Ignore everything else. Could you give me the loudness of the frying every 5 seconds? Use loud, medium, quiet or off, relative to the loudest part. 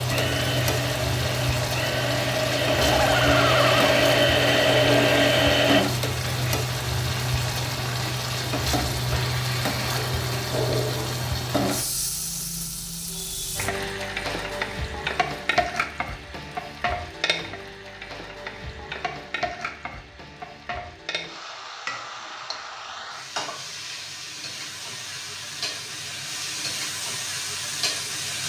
loud, loud, loud, medium, medium, medium.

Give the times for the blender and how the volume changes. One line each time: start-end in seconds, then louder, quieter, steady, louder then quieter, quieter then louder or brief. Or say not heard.
0.0-5.8 louder.